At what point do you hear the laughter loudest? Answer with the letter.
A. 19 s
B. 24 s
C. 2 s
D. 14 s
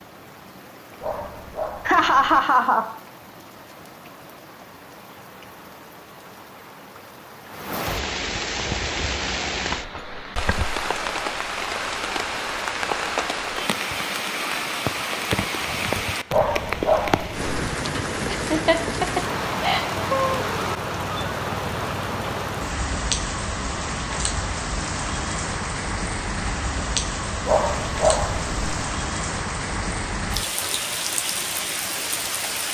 C.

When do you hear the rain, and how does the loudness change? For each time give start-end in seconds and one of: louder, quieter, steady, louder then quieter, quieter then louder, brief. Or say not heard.
0.0-32.6 louder.